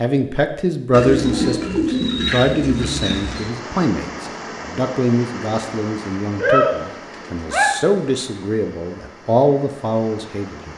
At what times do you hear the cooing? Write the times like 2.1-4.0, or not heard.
0.9-3.5, 6.3-7.7.